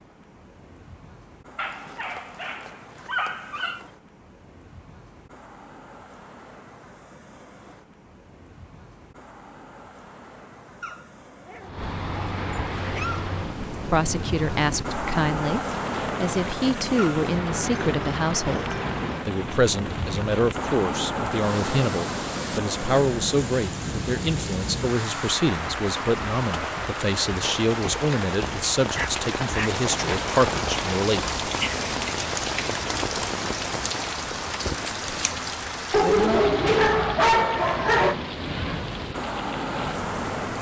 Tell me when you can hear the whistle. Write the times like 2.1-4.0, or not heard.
not heard.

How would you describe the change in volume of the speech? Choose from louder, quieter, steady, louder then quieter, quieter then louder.
steady.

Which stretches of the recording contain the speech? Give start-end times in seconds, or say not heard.
13.9-31.4.